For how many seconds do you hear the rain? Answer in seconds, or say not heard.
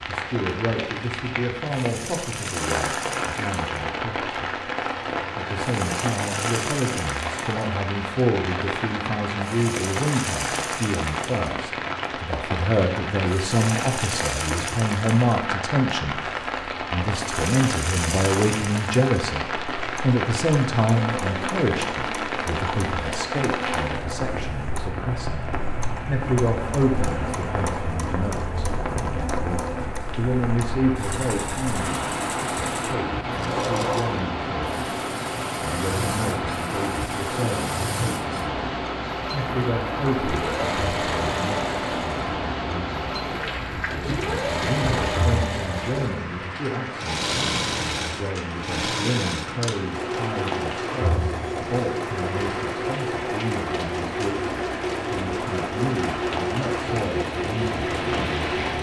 59 s.